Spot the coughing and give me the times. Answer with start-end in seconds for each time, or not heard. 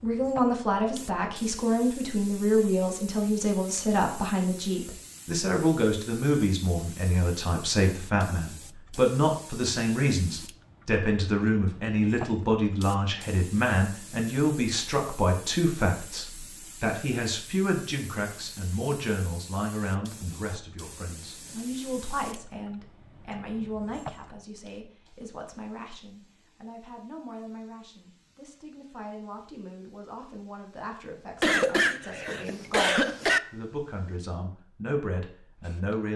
31.4-33.4.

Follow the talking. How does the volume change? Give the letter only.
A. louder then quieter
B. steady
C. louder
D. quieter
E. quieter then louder
D.